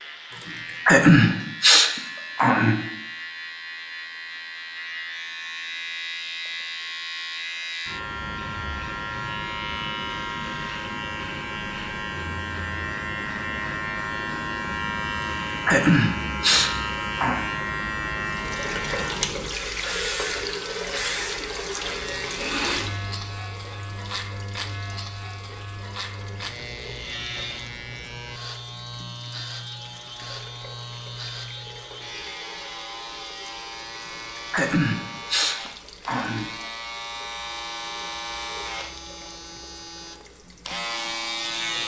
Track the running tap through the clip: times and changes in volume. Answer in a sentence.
The running tap can be heard from 18.2 to 41.8 s, getting quieter.